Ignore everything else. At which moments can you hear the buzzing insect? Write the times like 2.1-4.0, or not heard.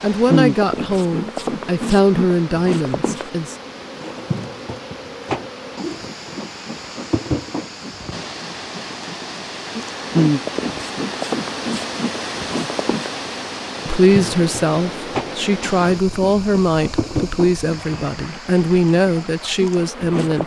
0.0-20.4.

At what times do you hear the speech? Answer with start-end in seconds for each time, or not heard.
0.0-3.5, 13.8-20.4.